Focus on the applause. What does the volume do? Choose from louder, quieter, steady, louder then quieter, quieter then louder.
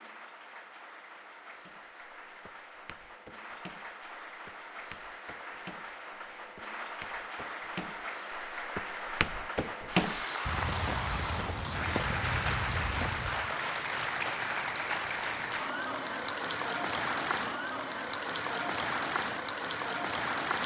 louder.